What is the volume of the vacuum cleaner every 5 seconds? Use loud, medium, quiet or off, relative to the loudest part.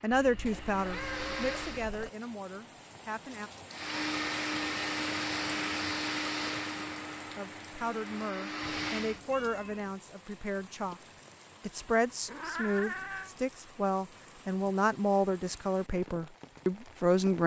loud, loud, off, off.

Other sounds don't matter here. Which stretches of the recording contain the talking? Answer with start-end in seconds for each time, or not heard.
0.0-3.5, 7.3-11.0, 11.6-17.4.